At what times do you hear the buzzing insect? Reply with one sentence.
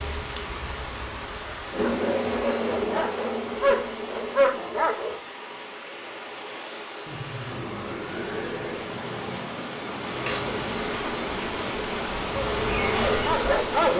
You can hear the buzzing insect from 1.7 to 4.8 s and from 10.1 to 13.9 s.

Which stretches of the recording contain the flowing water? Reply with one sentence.
The flowing water can be heard from 0.0 to 13.9 s.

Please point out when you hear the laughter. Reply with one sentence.
You can hear the laughter from 7.0 to 8.8 s.